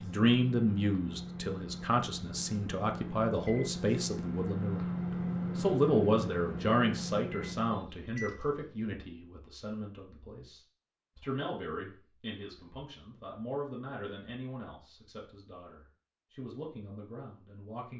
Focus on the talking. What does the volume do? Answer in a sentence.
The volume of the talking goes down.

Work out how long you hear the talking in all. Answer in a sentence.
The talking can be heard for 18 seconds in total.